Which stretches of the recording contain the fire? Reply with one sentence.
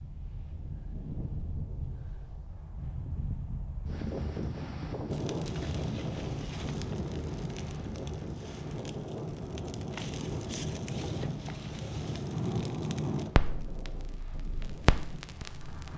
You can hear the fire from 5.1 to 15.9 s.